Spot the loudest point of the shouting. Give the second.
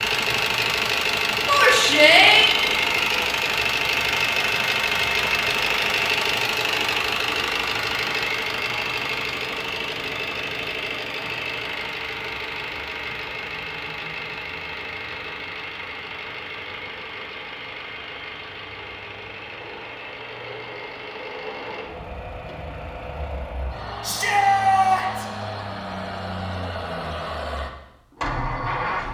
2 s.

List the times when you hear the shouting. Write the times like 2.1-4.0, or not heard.
1.4-2.5, 24.0-25.2.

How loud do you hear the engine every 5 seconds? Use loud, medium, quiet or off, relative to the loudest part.
loud, loud, medium, quiet, quiet, medium.